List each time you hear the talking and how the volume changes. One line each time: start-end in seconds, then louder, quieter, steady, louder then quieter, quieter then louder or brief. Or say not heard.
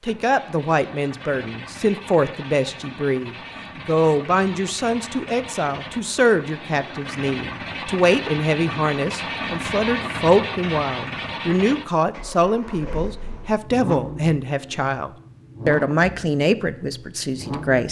0.0-17.8 steady.